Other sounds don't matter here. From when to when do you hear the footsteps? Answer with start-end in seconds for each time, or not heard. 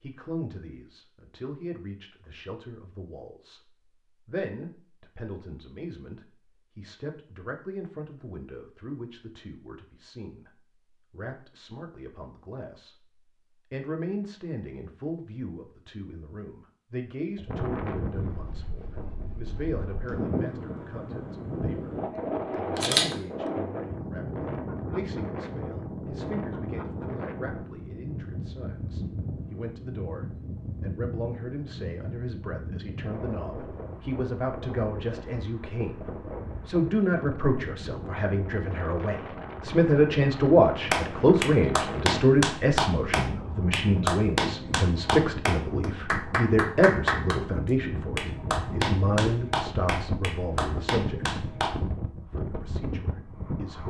not heard.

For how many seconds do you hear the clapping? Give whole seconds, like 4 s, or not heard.
10 s.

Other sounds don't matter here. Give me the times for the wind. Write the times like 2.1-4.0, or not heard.
17.4-53.8.